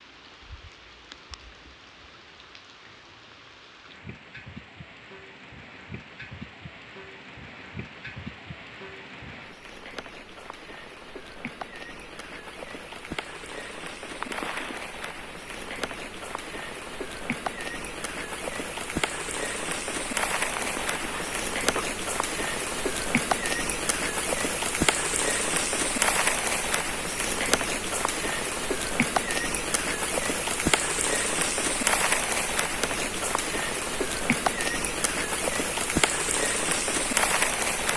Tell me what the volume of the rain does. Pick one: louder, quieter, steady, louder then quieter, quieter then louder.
louder.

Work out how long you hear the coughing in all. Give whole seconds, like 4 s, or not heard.
2 s.